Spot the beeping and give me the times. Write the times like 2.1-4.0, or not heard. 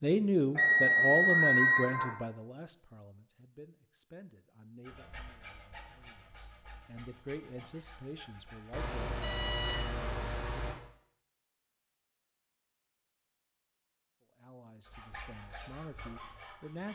0.6-2.1, 8.7-10.8.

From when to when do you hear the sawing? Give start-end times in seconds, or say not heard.
4.8-8.9, 14.8-16.9.